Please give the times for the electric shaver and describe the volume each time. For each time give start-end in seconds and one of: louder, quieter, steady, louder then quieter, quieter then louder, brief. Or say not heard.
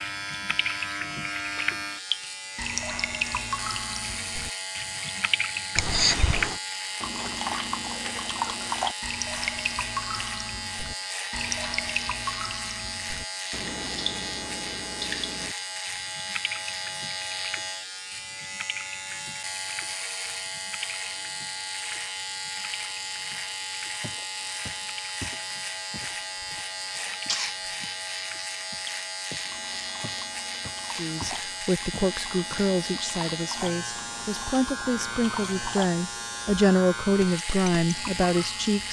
0.0-38.8 steady.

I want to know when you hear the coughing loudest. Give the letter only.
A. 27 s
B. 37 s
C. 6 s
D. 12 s
C.